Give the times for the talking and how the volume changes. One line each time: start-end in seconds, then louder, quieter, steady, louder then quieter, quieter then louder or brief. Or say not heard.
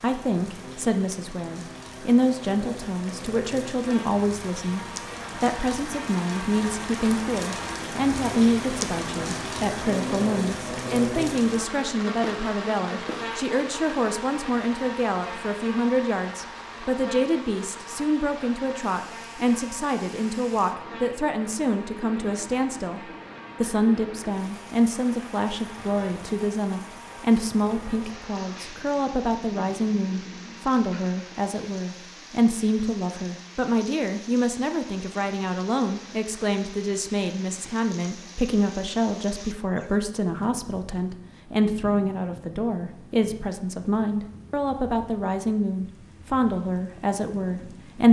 0.0-48.0 steady.